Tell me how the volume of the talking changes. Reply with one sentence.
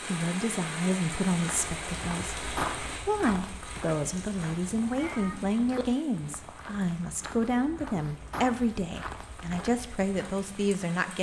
The loudness of the talking stays about the same.